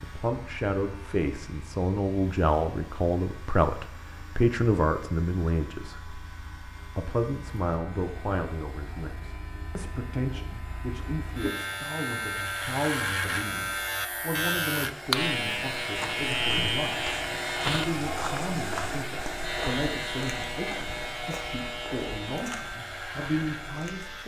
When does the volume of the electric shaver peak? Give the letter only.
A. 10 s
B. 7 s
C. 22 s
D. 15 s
D.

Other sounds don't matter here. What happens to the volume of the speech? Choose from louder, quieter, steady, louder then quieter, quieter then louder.
quieter.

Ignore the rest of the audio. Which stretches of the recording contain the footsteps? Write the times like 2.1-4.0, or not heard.
15.8-24.2.